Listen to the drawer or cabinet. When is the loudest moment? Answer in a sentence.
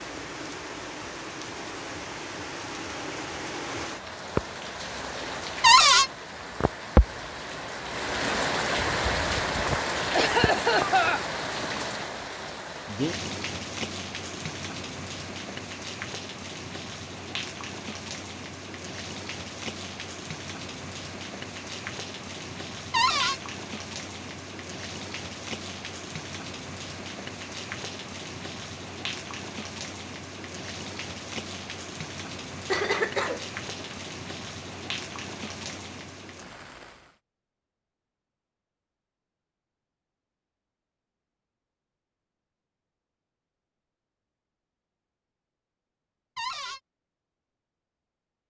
The volume of the drawer or cabinet peaks at 6 seconds.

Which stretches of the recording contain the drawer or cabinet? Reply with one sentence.
The drawer or cabinet can be heard from 5.6 to 6.1 s, from 22.9 to 23.4 s and from 46.4 to 46.8 s.